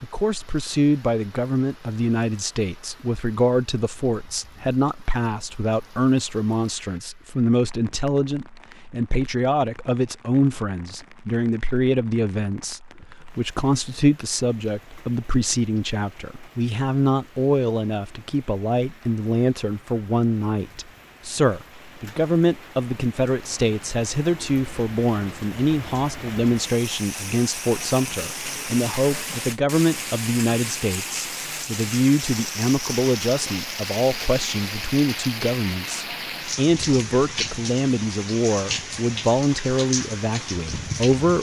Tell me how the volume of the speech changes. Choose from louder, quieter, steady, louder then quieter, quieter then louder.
steady.